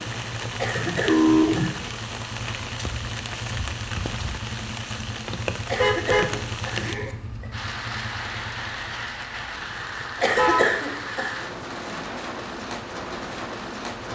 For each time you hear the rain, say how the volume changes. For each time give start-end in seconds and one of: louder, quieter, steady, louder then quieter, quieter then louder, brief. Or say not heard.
0.0-14.1 steady.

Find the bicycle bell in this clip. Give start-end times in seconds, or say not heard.
not heard.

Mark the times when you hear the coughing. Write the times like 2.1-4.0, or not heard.
0.6-1.9, 5.7-7.5, 10.2-11.3.